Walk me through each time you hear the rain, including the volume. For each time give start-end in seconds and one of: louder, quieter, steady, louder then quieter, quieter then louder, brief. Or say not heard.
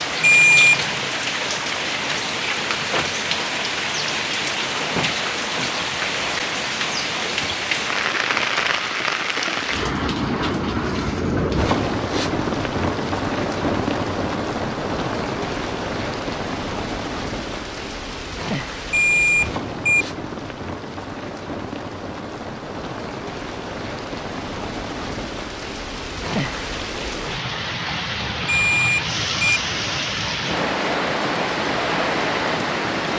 0.0-33.1 quieter then louder.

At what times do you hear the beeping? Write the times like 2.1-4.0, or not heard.
0.2-1.1, 18.9-20.1, 28.4-29.6.